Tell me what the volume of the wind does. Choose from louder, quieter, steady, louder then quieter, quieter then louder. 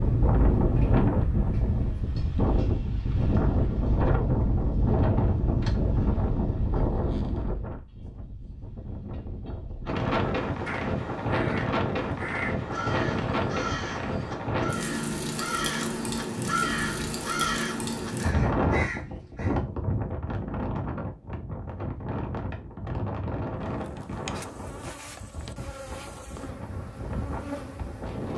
quieter.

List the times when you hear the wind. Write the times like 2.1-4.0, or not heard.
0.0-28.3.